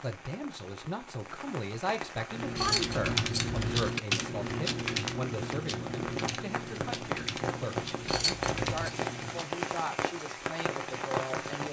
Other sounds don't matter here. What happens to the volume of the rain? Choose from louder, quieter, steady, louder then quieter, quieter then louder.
louder.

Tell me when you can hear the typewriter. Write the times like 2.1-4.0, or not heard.
2.3-9.5.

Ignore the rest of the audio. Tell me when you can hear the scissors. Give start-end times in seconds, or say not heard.
2.5-3.9, 8.1-8.9.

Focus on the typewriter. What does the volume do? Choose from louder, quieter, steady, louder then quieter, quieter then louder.
quieter.